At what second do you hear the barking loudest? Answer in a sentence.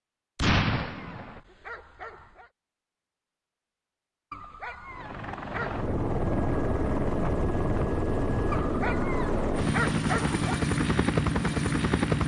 The loudest moment of the barking is at 10 seconds.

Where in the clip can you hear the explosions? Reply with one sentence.
The explosions can be heard from 0.3 to 1.4 s.